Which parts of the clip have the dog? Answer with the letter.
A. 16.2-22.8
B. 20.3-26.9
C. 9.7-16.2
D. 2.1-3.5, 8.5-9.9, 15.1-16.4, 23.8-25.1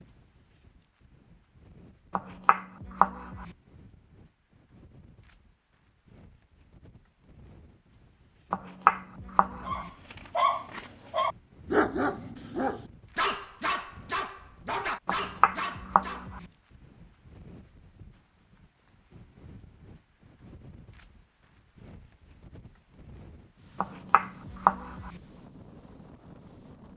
C.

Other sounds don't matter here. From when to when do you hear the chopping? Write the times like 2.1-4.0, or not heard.
2.1-3.5, 8.5-9.9, 15.1-16.4, 23.8-25.1.